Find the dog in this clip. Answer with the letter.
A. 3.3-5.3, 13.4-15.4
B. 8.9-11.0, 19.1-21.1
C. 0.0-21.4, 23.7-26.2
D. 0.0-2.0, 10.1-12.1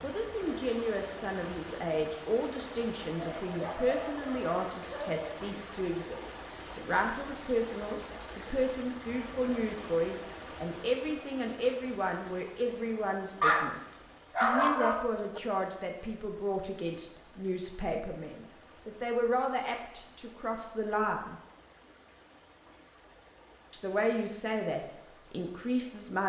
A.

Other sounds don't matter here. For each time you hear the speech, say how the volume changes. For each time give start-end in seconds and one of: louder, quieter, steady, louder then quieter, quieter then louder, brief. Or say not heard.
0.0-21.4 steady
23.7-26.2 brief.